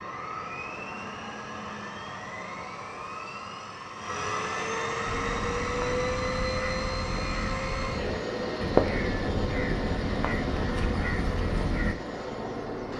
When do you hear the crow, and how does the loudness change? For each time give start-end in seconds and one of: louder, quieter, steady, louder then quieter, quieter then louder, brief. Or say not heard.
5.0-11.9 louder then quieter.